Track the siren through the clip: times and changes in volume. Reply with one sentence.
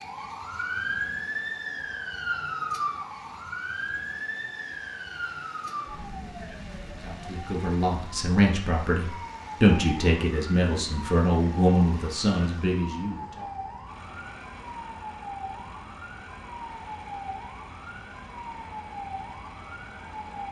You can hear the siren from 0.0 to 20.4 s, getting quieter.